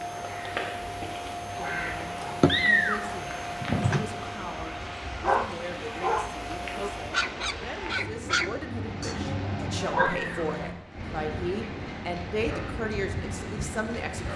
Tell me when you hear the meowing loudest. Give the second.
3 s.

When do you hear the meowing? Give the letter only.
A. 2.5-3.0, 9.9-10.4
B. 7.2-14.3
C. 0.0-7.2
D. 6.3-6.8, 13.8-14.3
A.